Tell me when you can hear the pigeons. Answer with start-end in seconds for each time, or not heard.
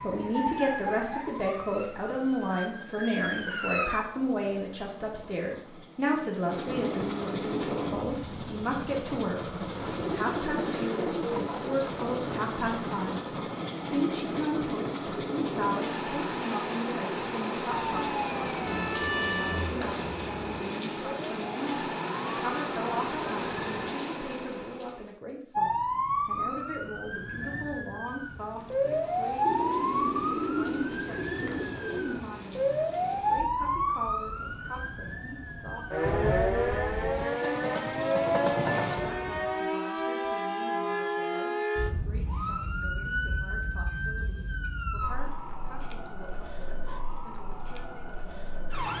9.7-11.5, 29.4-32.2.